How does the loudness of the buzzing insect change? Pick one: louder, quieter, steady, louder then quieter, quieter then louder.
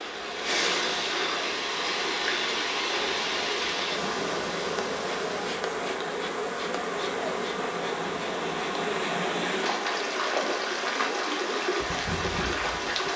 louder then quieter.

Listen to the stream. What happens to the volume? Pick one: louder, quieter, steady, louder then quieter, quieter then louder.
quieter then louder.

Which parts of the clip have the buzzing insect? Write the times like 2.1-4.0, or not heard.
0.0-13.1.